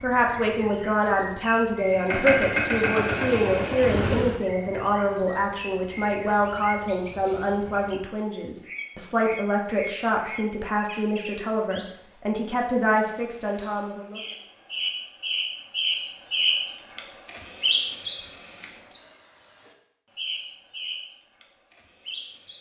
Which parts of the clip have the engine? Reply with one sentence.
You can hear the engine from 1.9 to 4.4 s.